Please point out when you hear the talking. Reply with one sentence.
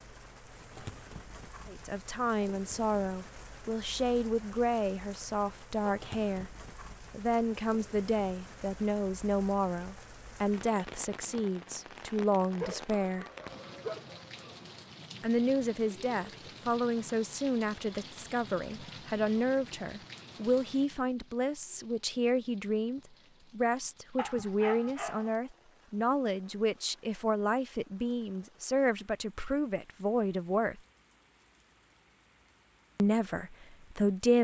You can hear the talking from 1.6 to 6.5 s, from 7.1 to 13.2 s, from 15.2 to 30.8 s and from 33.0 to 34.3 s.